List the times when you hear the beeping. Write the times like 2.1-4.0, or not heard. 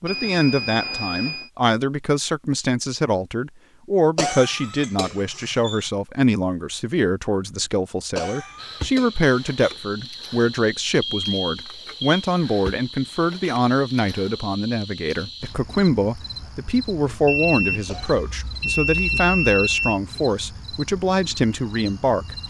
0.1-1.5, 11.0-12.2, 17.2-20.0.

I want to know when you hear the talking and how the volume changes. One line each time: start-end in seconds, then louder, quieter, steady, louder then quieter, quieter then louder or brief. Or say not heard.
0.0-22.4 steady.